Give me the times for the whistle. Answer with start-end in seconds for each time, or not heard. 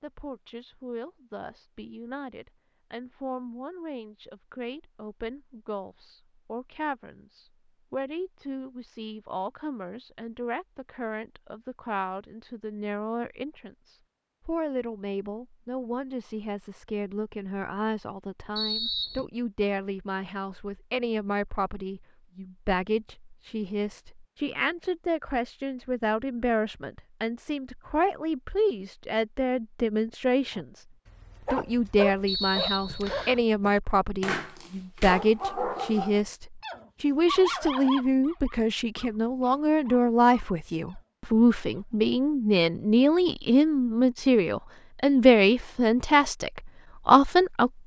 18.6-19.2, 32.2-33.4.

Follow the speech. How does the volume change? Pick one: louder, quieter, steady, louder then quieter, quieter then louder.
louder.